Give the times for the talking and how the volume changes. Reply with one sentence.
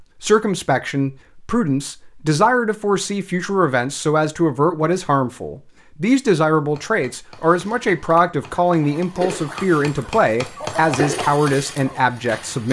You can hear the talking from 0.2 to 12.6 s, at a steady volume.